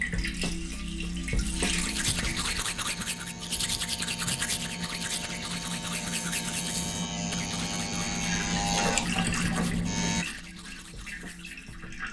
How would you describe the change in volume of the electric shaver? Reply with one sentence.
The volume of the electric shaver goes up.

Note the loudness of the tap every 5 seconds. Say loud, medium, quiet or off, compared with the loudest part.
loud, loud, medium.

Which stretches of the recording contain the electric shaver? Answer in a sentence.
You can hear the electric shaver from 1.5 to 10.2 s.